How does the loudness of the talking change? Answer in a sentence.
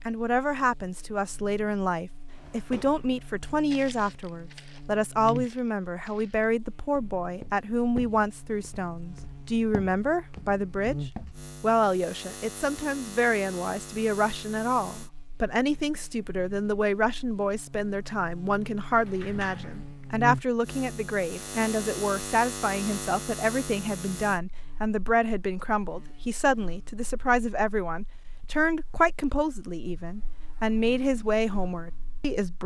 The loudness of the talking stays about the same.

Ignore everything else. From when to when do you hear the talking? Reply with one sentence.
The talking can be heard from 0.1 to 10.9 s and from 11.6 to 32.6 s.